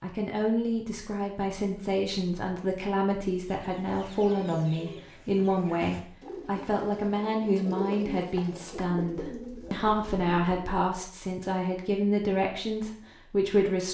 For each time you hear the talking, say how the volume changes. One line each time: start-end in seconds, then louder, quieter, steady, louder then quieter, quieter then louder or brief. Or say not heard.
0.0-13.8 steady.